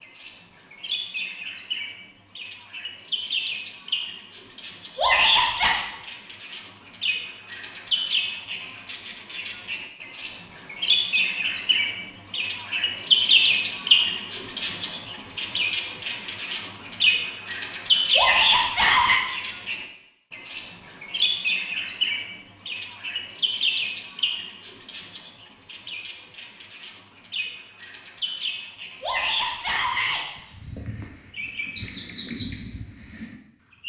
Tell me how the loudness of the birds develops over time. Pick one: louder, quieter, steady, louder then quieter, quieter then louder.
louder then quieter.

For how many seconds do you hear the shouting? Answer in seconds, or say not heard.
3 s.